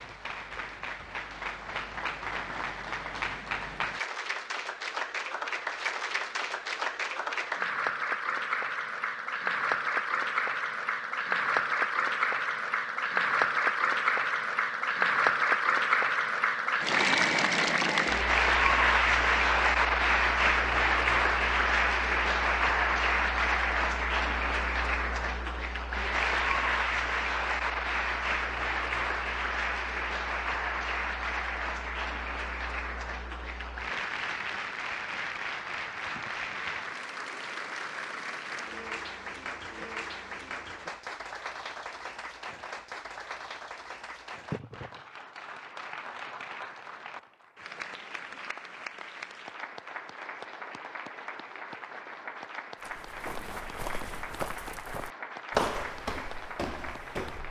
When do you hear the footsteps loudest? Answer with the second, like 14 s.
56 s.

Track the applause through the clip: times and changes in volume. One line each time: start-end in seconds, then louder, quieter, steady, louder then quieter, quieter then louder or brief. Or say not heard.
0.0-57.4 louder then quieter.